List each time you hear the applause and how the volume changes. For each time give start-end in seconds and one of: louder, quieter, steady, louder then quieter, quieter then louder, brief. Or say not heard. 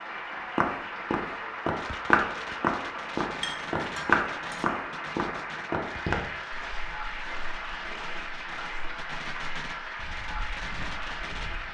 0.0-11.6 steady.